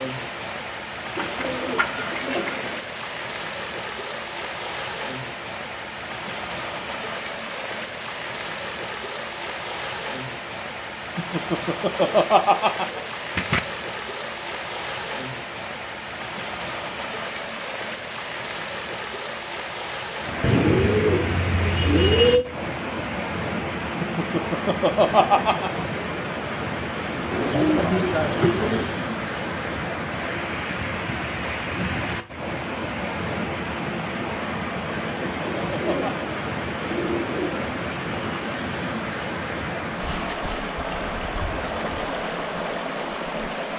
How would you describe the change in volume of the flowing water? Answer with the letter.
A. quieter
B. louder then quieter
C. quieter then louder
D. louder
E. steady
E.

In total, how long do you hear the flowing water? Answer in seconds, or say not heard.
44 s.